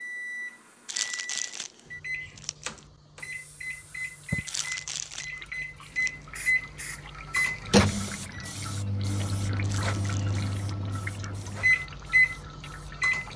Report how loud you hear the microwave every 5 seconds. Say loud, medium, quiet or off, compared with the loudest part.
medium, loud, loud.